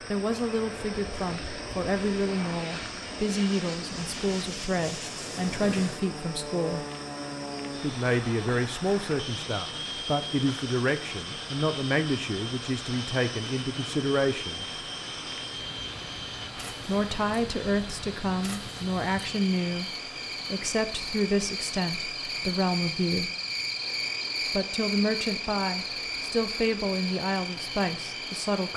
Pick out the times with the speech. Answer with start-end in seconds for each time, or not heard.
0.1-6.8, 7.8-14.7, 16.9-19.9, 20.5-23.3, 24.5-28.7.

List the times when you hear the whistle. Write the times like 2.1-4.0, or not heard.
not heard.